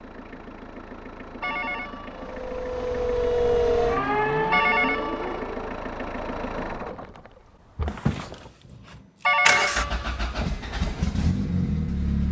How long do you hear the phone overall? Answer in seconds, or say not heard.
3 s.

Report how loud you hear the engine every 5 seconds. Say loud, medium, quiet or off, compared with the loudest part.
medium, loud, loud.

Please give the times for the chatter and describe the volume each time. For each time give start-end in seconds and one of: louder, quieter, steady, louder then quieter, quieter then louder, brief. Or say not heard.
not heard.